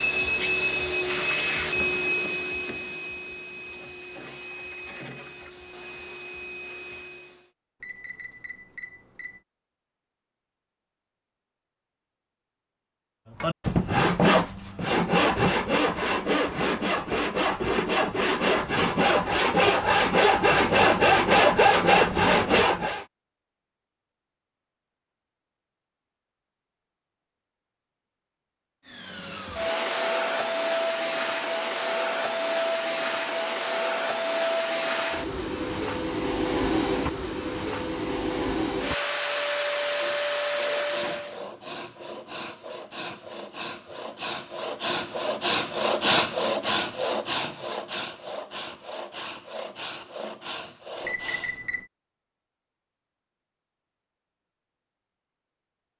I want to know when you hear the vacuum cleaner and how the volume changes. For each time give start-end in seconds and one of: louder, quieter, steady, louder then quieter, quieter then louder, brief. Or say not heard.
0.0-7.5 quieter
28.9-41.4 steady.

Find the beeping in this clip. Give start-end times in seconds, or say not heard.
7.8-9.4, 51.0-51.9.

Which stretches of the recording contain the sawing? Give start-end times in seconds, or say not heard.
13.4-23.1, 39.9-51.6.